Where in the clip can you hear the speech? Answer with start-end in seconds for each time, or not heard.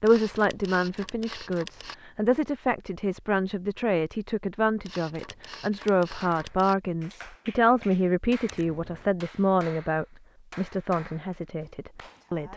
0.0-12.5.